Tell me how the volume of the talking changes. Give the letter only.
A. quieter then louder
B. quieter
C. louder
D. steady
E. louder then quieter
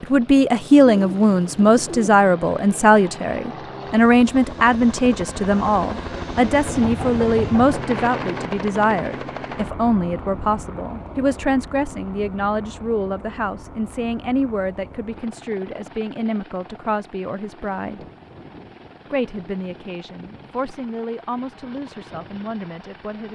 B.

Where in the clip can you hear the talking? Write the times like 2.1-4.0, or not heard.
0.0-18.1, 19.1-23.3.